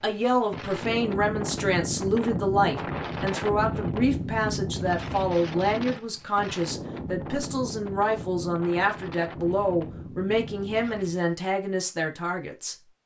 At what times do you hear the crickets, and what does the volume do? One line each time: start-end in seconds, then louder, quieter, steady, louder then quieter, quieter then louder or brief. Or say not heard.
not heard.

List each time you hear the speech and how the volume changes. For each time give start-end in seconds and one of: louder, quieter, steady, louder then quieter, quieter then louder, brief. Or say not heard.
0.0-12.8 steady.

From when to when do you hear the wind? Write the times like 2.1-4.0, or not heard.
0.0-11.3.